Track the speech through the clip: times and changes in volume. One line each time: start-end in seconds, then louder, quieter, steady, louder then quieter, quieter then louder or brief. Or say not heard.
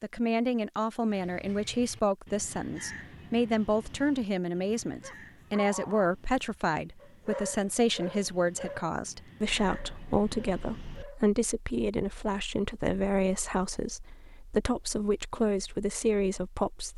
0.0-16.9 steady.